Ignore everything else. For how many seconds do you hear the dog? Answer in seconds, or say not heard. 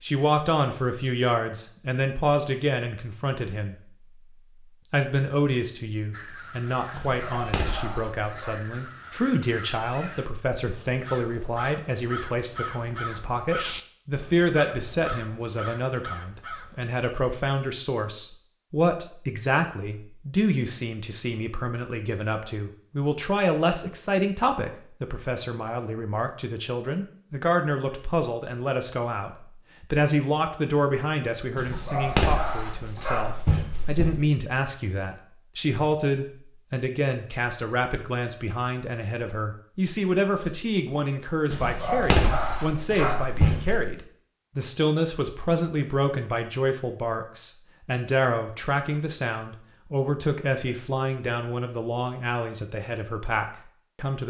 7 s.